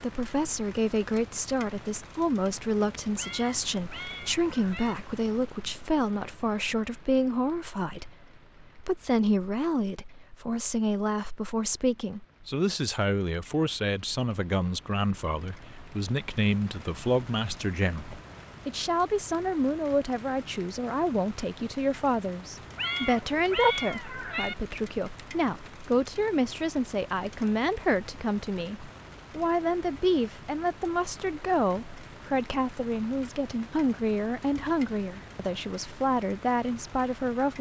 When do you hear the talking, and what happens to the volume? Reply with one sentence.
You can hear the talking from 0.0 to 37.5 s, at a steady volume.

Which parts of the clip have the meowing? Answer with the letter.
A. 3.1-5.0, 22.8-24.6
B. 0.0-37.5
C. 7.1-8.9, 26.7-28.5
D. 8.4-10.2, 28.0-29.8
A.